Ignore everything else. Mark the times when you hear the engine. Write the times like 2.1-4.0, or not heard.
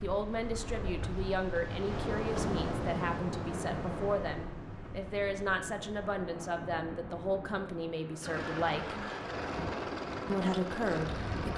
8.2-11.5.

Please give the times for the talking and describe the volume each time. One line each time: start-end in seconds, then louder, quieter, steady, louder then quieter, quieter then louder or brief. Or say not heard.
0.0-9.0 steady
10.2-11.5 brief.